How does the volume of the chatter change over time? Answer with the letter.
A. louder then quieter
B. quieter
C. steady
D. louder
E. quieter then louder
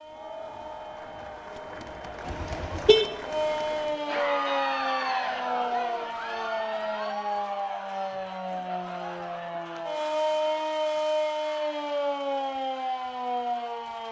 A.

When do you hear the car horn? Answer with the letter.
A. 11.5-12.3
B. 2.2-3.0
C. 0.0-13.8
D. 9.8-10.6
B.